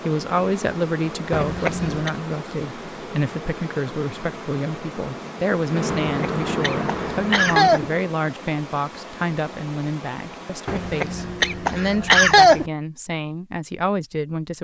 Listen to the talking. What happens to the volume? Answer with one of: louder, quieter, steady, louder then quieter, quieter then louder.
steady.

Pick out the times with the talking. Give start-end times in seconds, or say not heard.
0.0-14.6.